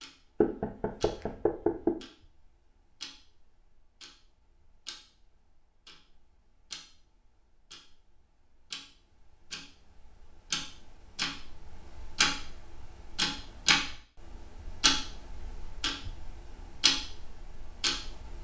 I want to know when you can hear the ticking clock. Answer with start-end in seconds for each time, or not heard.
0.0-18.3.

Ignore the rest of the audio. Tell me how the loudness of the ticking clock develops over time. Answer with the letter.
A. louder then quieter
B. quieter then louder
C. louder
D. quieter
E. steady
C.